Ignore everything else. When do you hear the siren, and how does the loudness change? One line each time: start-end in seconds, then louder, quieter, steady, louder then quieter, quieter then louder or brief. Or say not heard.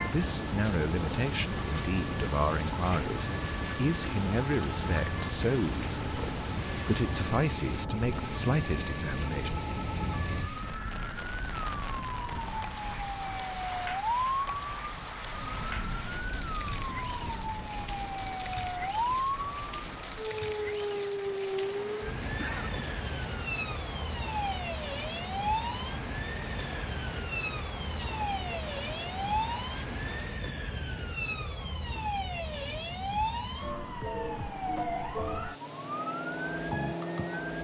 0.0-37.6 steady.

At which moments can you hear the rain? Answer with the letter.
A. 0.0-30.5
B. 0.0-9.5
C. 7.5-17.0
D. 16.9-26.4
A.